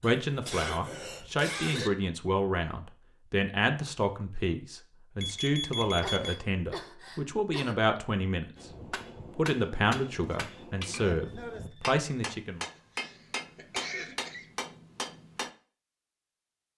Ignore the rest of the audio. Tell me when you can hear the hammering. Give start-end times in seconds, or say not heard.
8.6-15.5.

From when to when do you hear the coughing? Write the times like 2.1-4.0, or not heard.
0.0-1.9, 6.0-8.0, 12.9-14.4.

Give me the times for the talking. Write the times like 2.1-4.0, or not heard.
0.0-8.5, 9.3-12.7.